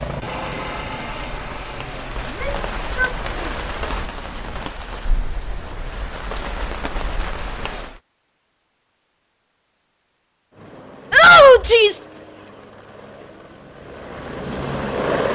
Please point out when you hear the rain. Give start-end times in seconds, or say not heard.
0.0-8.0.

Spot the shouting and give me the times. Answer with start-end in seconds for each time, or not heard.
2.2-3.5, 11.1-12.1.